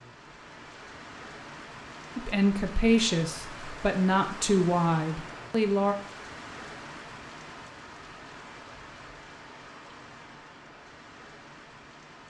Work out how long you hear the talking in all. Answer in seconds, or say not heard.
4 s.